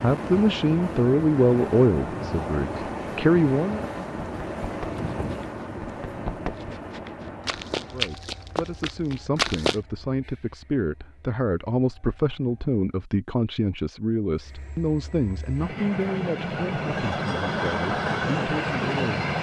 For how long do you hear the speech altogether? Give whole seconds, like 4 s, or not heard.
15 s.